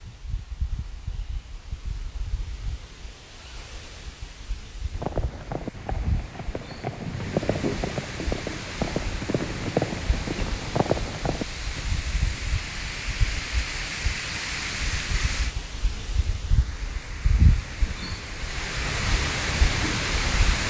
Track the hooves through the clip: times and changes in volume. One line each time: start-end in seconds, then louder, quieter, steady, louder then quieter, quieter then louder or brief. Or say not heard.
4.9-11.9 louder.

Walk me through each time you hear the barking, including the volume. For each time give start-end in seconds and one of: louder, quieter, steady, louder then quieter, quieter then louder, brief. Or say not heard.
not heard.